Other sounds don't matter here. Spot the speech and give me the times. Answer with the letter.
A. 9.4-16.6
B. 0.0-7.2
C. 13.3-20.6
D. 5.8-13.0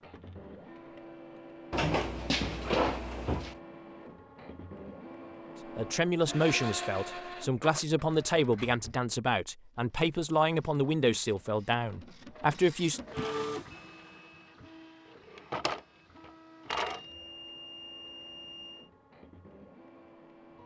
D.